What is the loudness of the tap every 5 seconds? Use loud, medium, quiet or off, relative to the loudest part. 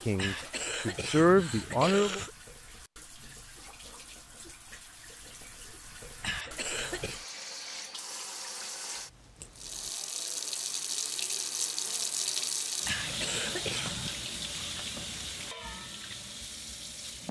quiet, medium, loud, medium.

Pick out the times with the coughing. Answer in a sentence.
The coughing can be heard from 0.1 to 2.4 s, from 6.2 to 7.2 s and from 12.8 to 14.2 s.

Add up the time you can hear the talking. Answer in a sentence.
You can hear the talking for 2 seconds altogether.